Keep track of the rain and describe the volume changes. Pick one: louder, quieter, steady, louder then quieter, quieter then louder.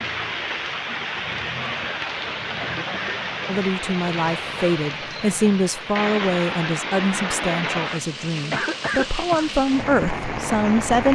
steady.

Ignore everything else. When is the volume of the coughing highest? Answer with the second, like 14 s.
9 s.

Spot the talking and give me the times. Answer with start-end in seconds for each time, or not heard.
3.5-11.1.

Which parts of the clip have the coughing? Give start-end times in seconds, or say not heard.
2.6-3.2, 8.5-9.5.